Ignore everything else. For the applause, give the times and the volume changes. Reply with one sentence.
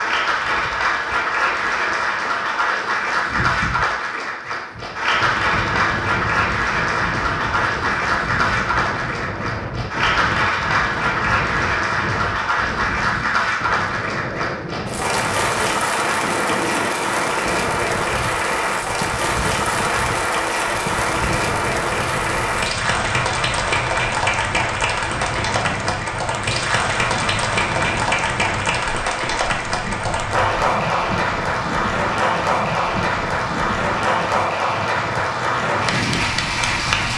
You can hear the applause from 0.0 to 37.1 s, at a steady volume.